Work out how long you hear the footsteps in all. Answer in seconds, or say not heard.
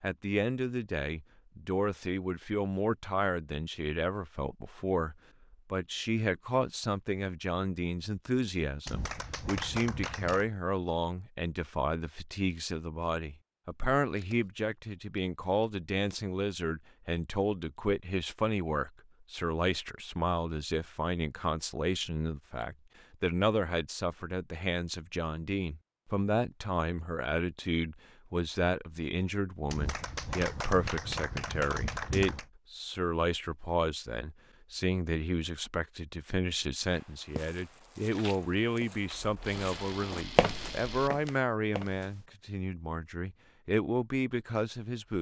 5 s.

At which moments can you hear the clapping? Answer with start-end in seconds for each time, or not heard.
8.8-10.5, 29.7-32.5.